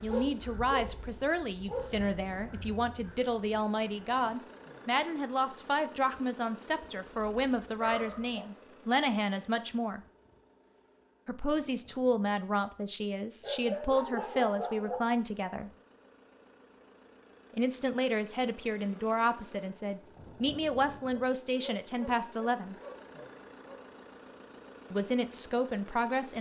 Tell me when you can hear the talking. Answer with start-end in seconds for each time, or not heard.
0.0-10.0, 11.2-15.7, 17.5-22.8, 24.9-26.3.